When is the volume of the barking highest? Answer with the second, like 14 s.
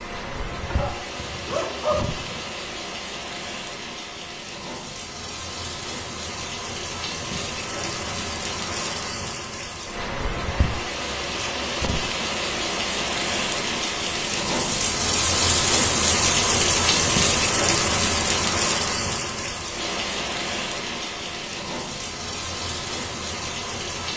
2 s.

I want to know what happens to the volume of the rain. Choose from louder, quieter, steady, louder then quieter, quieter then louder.
louder then quieter.